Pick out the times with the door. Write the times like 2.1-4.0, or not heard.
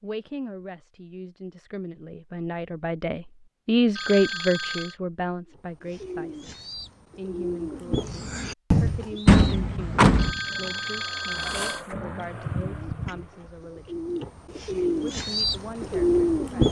9.2-10.3.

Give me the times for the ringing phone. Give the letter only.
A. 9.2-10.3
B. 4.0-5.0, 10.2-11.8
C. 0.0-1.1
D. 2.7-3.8
B.